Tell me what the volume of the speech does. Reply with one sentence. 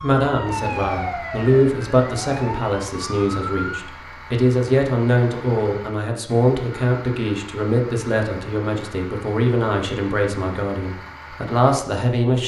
The volume of the speech stays about the same.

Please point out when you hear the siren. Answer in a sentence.
You can hear the siren from 0.0 to 3.9 s.